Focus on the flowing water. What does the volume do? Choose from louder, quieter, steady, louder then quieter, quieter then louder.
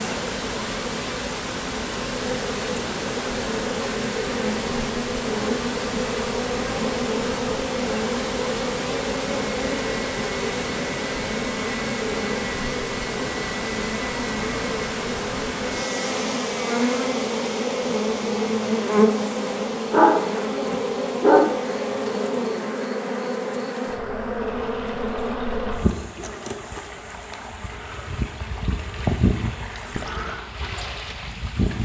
quieter.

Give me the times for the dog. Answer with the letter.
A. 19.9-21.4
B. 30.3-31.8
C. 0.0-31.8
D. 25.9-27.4
A.